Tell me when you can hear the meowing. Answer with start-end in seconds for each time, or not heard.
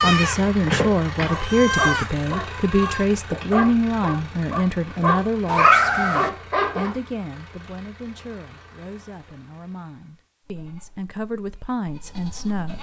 5.5-6.3.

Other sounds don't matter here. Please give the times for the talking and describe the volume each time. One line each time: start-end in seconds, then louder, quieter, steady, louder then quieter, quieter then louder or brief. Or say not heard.
0.0-12.7 quieter then louder.